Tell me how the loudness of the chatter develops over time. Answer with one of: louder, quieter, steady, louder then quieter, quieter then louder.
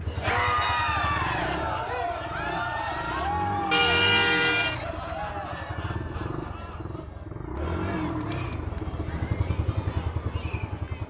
quieter.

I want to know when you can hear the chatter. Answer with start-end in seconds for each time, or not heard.
0.0-11.0.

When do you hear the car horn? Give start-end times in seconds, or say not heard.
3.7-4.8.